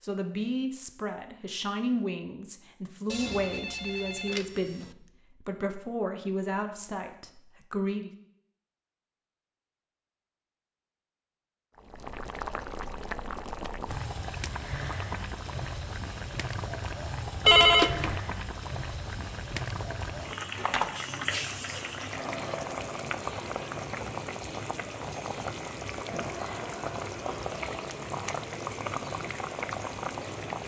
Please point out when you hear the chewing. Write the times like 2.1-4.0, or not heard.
not heard.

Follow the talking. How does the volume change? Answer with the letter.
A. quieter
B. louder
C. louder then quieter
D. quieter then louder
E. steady
E.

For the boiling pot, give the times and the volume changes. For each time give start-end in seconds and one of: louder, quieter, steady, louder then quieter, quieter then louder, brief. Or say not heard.
11.8-30.6 steady.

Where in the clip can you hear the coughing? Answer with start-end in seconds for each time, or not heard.
not heard.